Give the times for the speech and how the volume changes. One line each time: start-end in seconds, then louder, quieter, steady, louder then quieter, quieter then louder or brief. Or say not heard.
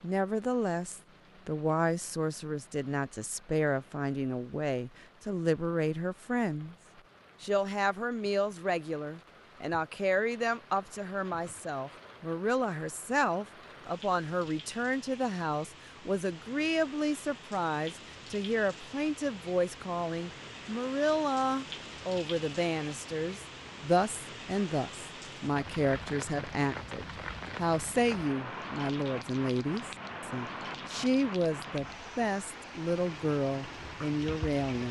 0.0-6.8 steady
7.4-34.8 steady.